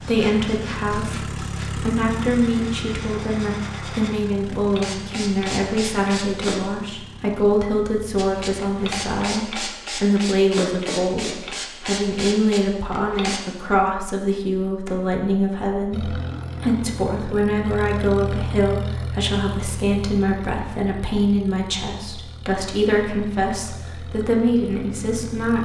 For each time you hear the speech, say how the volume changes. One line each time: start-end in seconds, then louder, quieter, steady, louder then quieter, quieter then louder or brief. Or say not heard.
0.0-25.6 steady.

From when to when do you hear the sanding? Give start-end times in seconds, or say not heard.
0.0-6.6, 8.2-13.4.